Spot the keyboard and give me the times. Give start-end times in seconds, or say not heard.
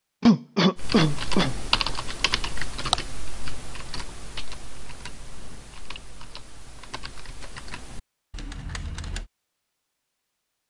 0.8-9.2.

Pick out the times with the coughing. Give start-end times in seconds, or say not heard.
0.2-1.6.